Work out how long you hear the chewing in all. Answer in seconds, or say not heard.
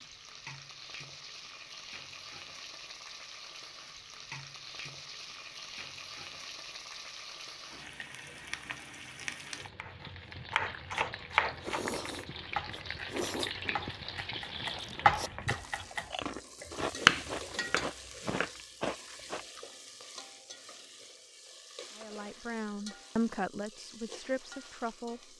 8 s.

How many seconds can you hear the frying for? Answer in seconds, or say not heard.
25 s.